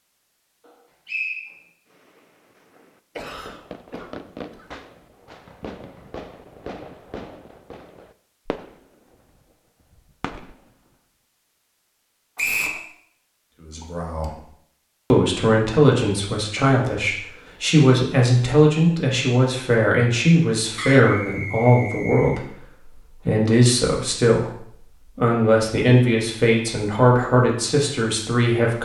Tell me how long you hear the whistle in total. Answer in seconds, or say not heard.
2 s.